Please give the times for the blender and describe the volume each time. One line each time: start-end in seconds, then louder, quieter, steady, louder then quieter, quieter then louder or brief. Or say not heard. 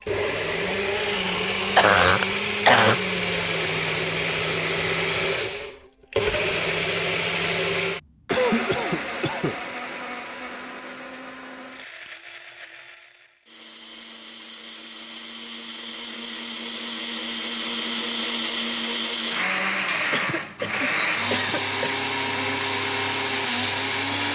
0.0-24.3 quieter then louder.